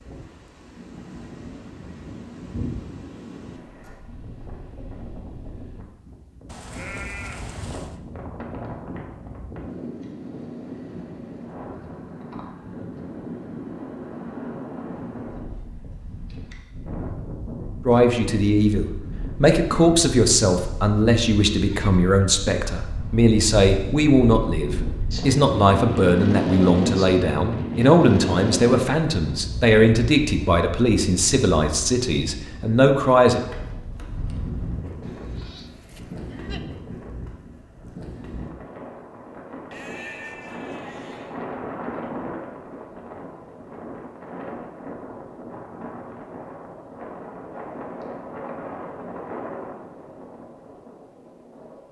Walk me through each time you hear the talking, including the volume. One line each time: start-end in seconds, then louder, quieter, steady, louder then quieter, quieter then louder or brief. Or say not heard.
17.9-33.4 steady.